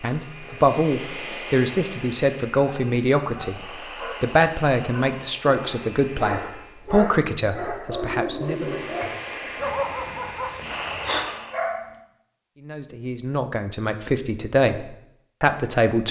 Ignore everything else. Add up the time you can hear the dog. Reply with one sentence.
The dog can be heard for 9 seconds in total.